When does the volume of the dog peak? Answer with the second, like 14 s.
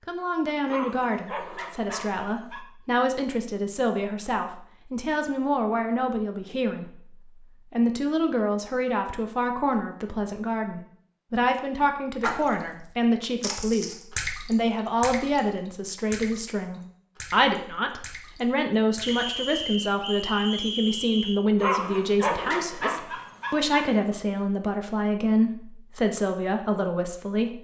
22 s.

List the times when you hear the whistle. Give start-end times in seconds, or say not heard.
19.0-21.4.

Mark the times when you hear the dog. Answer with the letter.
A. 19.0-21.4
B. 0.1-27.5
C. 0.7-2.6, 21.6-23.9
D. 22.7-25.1
C.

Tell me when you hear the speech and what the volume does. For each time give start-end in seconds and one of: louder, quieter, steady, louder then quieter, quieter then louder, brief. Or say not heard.
0.1-27.5 steady.